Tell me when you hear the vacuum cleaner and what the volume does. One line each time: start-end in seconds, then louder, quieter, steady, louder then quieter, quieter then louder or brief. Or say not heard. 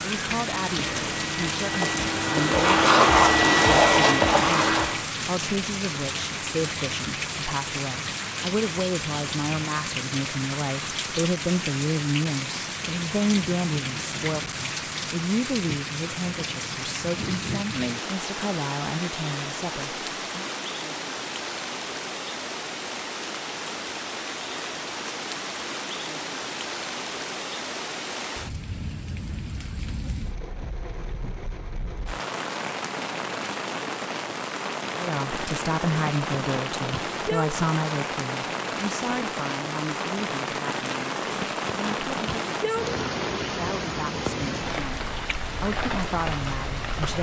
0.0-5.0 louder.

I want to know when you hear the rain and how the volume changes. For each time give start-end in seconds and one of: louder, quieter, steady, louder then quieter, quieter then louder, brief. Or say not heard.
0.0-47.1 steady.